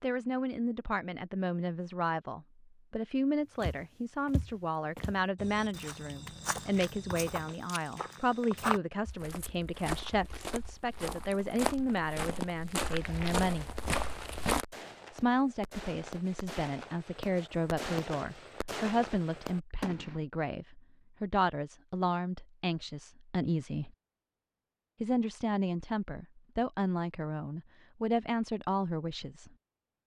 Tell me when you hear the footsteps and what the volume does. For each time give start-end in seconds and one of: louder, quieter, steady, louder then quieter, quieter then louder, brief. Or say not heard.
3.6-14.7 louder.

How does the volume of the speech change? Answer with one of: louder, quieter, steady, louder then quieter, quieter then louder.
steady.